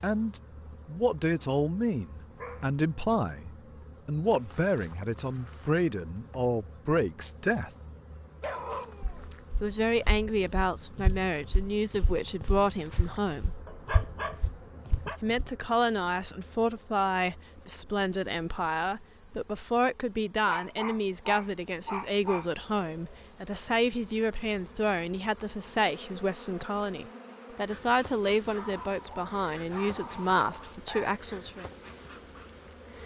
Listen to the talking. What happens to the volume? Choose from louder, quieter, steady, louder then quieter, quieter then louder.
steady.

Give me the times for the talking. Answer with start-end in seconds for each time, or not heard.
0.0-7.7, 9.6-13.5, 15.2-31.6.